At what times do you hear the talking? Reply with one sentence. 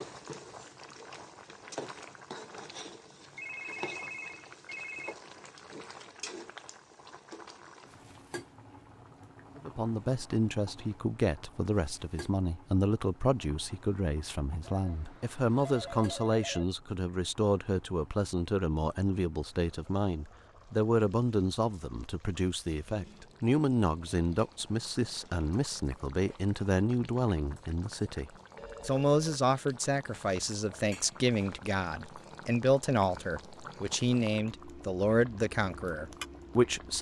The talking can be heard from 9.6 to 36.9 s.